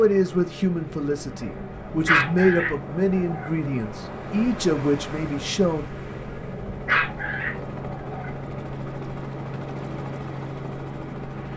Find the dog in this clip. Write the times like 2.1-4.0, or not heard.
2.0-3.5, 6.8-8.3.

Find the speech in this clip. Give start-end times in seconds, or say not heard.
0.0-5.8.